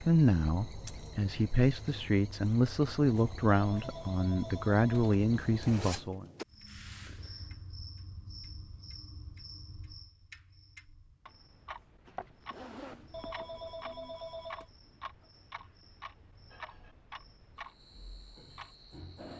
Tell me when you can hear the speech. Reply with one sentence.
The speech can be heard from 0.0 to 6.2 s.